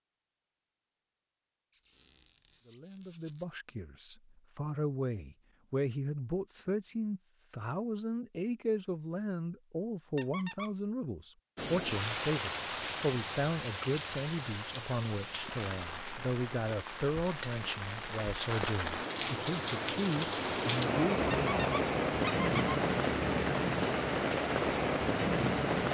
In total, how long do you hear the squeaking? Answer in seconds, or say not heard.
4 s.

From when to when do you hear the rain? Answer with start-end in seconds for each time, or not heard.
11.6-25.9.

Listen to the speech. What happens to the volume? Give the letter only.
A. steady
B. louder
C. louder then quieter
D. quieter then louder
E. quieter
A.